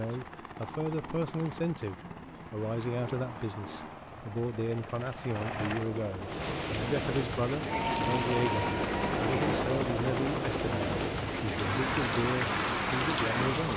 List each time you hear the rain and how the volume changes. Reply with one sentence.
You can hear the rain from 6.2 to 13.7 s, getting quieter then louder.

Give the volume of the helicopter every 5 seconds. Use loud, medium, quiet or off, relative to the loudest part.
medium, loud, loud.